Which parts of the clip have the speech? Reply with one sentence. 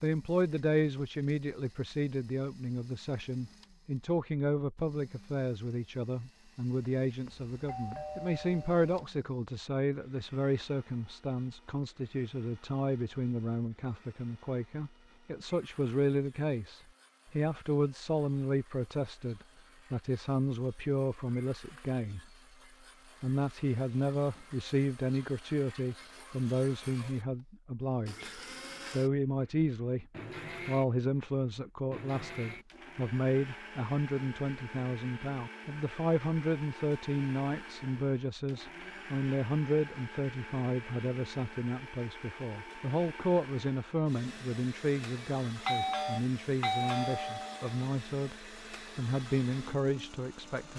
You can hear the speech from 0.0 to 22.2 s, from 23.2 to 30.1 s and from 30.6 to 50.7 s.